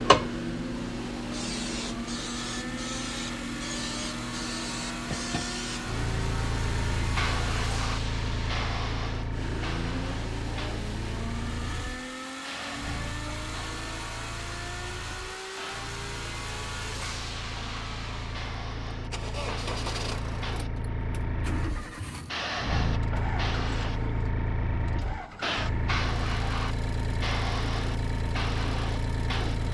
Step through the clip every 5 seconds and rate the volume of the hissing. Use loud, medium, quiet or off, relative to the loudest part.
loud, loud, medium, medium, loud, loud.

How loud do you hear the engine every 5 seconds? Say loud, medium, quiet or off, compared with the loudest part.
loud, loud, loud, loud, loud, medium.